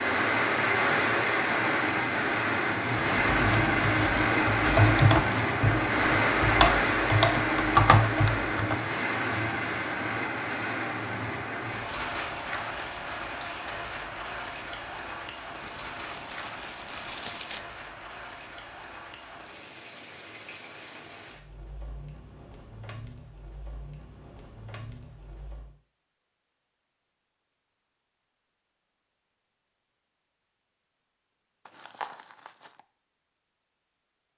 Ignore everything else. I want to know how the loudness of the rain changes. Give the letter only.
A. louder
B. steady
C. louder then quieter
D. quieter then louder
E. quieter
E.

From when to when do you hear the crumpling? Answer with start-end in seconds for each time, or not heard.
4.0-5.5, 15.6-17.6, 31.6-32.8.